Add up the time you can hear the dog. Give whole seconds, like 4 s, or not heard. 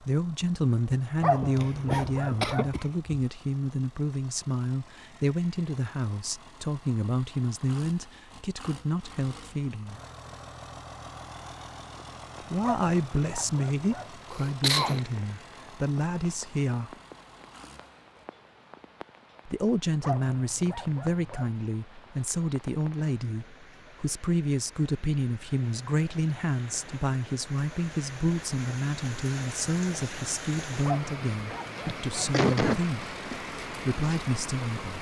6 s.